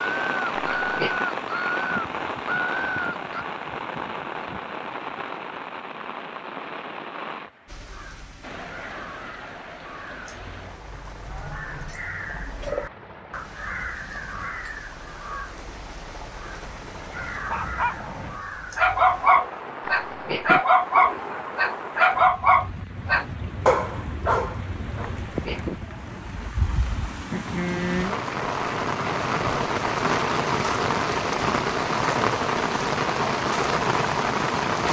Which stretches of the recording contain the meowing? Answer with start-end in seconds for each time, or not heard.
0.6-1.2, 19.8-20.6, 25.2-25.8.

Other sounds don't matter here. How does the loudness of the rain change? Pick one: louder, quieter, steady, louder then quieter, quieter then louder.
quieter then louder.